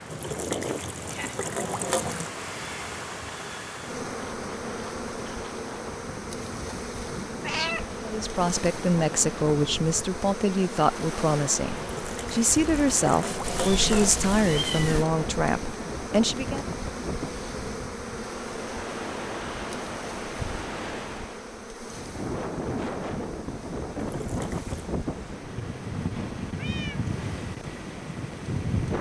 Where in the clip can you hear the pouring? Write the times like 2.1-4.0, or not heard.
0.1-2.3, 11.8-14.3, 23.9-24.9.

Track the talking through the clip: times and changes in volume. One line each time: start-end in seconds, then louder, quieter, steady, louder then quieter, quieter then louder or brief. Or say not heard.
8.1-16.6 steady.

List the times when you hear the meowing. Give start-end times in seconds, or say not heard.
7.4-7.8, 13.4-15.1, 26.6-27.1.